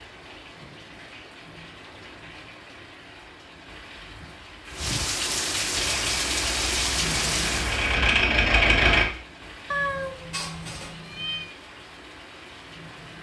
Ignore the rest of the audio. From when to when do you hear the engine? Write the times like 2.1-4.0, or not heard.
5.7-9.1.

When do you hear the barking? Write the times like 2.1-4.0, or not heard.
not heard.